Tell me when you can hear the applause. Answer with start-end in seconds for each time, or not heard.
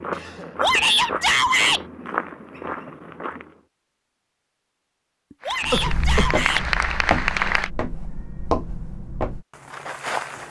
5.4-7.7.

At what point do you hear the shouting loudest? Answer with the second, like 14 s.
1 s.